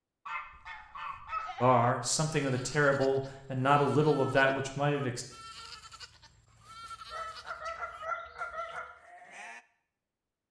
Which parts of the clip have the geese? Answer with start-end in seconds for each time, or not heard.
0.2-1.6, 7.1-8.9.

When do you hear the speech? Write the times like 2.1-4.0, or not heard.
1.6-5.2.